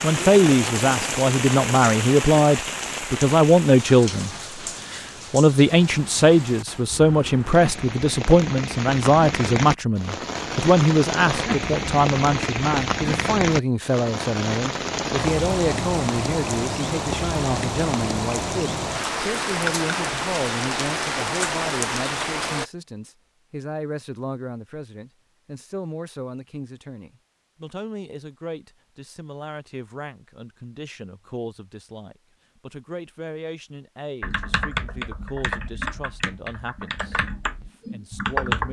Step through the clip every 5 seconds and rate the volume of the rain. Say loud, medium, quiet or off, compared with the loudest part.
loud, medium, loud, loud, loud, off, off, off.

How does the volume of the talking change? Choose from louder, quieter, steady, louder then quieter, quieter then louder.
quieter.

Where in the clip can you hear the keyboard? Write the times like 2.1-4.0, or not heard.
34.2-38.6.